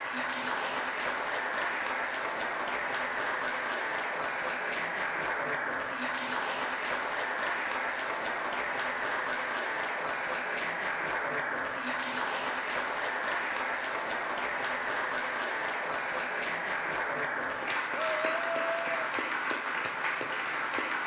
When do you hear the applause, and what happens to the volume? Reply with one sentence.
The applause can be heard from 0.0 to 21.0 s, at a steady volume.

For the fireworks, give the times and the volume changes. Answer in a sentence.
The fireworks can't be heard in this clip.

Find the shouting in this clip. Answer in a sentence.
You can hear the shouting from 17.9 to 19.1 s.